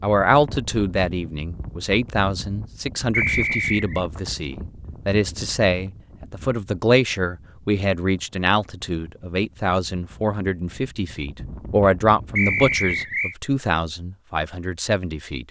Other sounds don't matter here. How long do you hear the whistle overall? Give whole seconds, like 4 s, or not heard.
2 s.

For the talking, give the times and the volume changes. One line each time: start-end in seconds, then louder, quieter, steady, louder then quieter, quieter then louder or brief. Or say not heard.
0.0-15.4 steady.